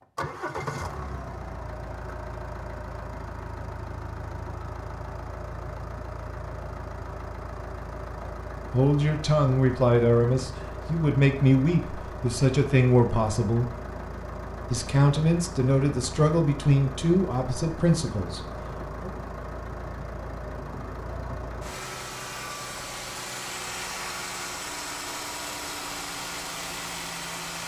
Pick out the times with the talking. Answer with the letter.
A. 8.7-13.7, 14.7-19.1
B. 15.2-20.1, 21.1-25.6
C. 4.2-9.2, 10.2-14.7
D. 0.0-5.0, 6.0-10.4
A.